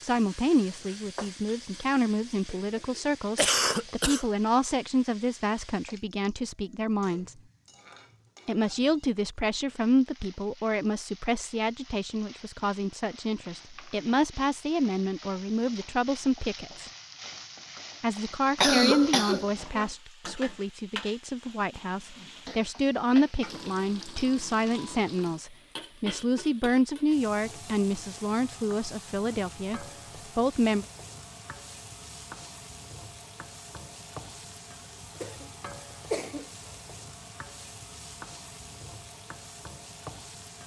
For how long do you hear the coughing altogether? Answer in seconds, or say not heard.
3 s.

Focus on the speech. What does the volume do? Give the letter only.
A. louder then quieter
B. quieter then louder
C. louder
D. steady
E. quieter
D.